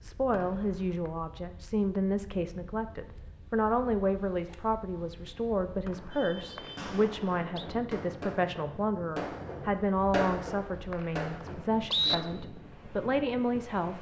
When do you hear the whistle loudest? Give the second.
12 s.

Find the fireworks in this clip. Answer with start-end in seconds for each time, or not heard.
6.1-12.3.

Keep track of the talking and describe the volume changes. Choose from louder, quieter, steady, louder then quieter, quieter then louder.
steady.